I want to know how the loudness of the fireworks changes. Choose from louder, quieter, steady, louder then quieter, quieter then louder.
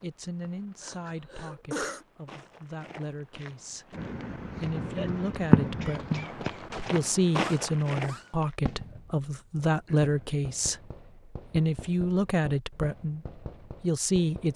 quieter.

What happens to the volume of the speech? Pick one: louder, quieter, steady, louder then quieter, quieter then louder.
louder.